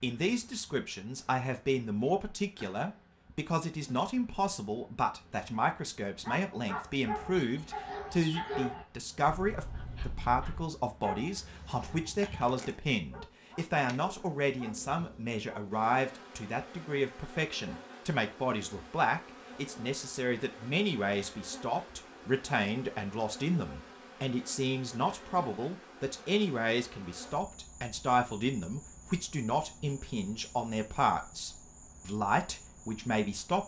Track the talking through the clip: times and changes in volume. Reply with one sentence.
You can hear the talking from 0.0 to 33.6 s, at a steady volume.